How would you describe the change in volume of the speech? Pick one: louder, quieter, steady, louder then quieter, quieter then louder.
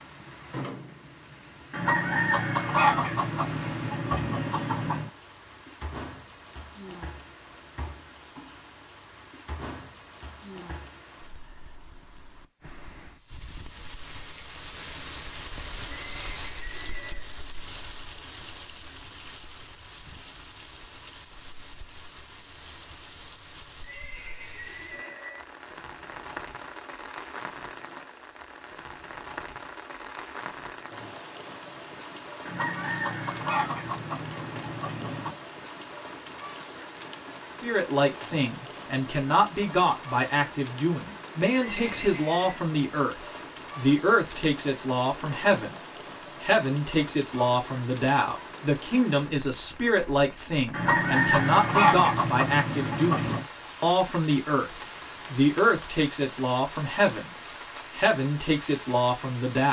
steady.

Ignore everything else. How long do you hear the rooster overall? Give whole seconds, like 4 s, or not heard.
9 s.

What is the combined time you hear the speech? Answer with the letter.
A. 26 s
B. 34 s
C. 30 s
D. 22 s
D.